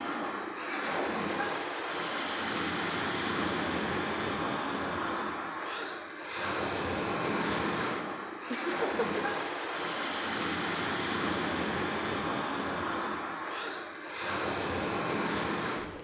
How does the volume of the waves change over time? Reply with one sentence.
The loudness of the waves stays about the same.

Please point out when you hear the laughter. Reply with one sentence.
You can hear the laughter from 8.5 to 9.2 s.